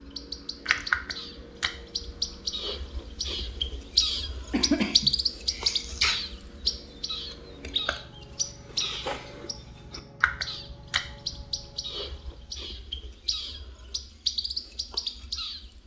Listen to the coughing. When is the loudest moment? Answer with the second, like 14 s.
5 s.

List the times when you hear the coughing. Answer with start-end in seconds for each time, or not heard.
4.5-6.2.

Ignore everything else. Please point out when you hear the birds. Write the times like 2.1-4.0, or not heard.
0.0-15.8.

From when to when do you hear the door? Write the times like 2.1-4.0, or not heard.
not heard.